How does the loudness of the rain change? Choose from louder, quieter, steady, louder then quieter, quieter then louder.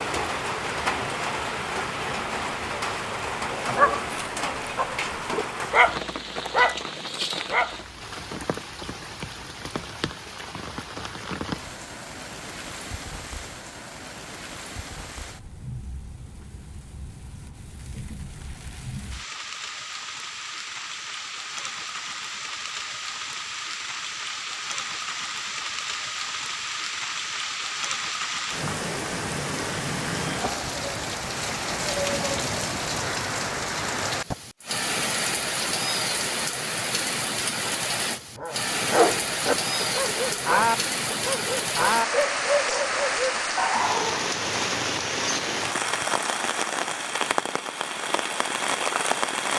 quieter then louder.